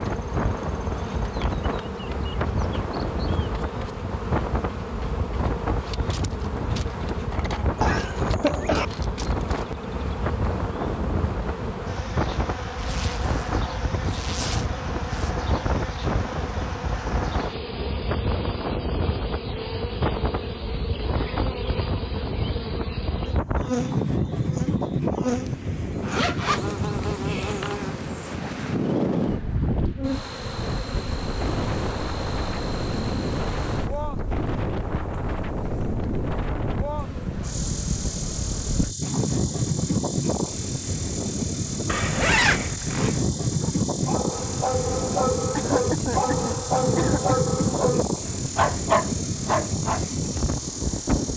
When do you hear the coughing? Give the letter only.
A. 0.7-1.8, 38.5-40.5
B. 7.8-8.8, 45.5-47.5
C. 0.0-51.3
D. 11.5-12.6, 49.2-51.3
B.